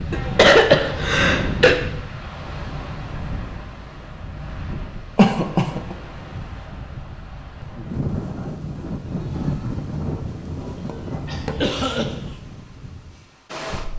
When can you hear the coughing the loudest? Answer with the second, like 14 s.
1 s.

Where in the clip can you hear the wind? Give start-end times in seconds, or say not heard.
0.0-13.9.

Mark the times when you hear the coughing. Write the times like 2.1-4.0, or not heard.
0.1-1.8, 5.2-6.0, 11.2-12.3.